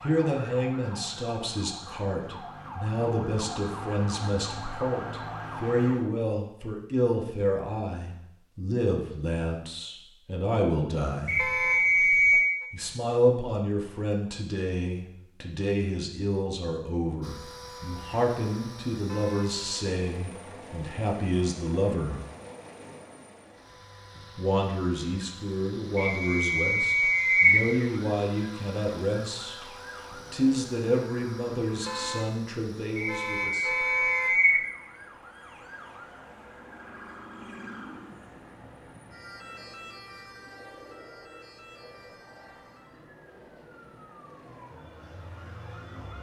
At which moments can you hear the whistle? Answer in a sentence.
The whistle can be heard from 11.2 to 12.4 s, from 25.9 to 27.6 s and from 33.0 to 34.6 s.